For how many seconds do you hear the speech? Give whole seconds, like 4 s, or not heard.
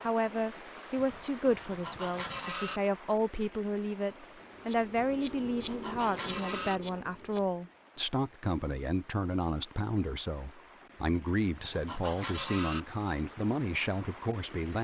15 s.